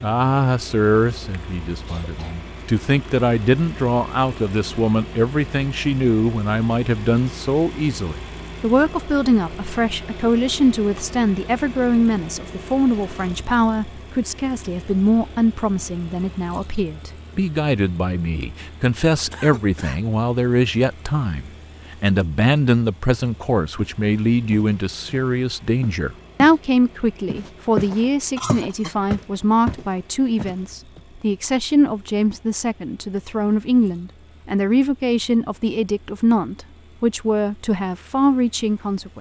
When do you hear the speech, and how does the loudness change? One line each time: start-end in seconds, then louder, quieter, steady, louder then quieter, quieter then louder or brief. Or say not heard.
0.0-39.1 steady.